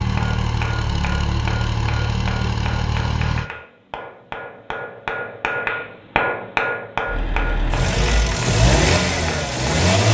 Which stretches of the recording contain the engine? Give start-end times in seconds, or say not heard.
0.0-3.5, 7.0-10.0.